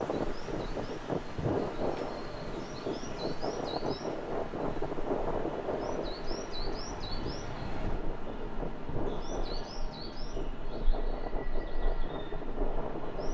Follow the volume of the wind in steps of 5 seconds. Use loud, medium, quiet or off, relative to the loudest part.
loud, loud, medium.